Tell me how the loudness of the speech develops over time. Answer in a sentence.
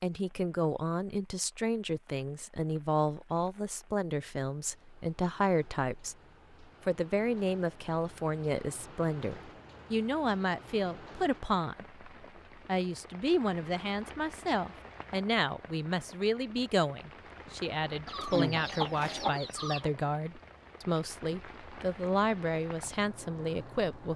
The volume of the speech stays about the same.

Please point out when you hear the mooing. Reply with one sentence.
You can't hear the mooing here.